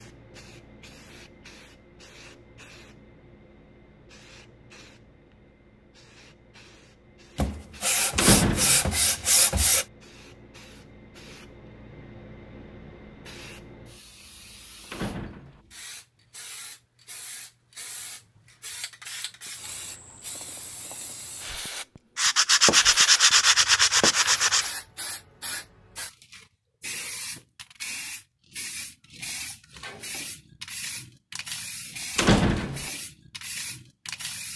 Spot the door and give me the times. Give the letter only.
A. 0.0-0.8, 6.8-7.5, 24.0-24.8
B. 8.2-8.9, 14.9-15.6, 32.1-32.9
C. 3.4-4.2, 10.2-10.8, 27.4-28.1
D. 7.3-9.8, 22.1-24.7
B.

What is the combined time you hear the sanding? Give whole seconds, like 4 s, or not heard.
5 s.